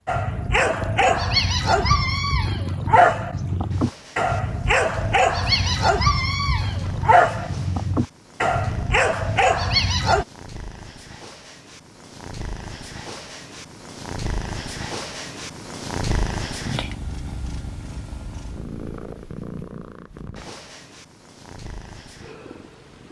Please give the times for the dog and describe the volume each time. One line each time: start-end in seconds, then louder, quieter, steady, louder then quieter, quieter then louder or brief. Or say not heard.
0.1-10.2 steady.